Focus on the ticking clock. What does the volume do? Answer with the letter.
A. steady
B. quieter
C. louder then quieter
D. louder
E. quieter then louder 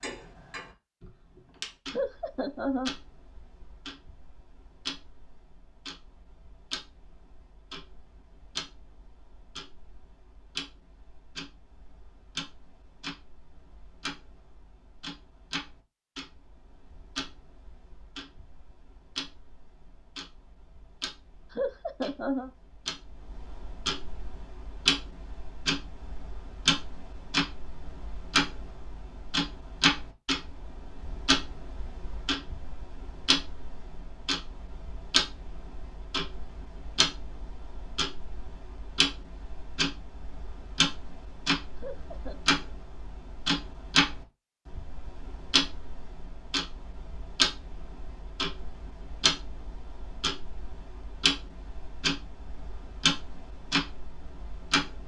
D.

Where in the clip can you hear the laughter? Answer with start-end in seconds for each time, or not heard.
1.9-3.0, 21.6-22.5, 41.8-42.4.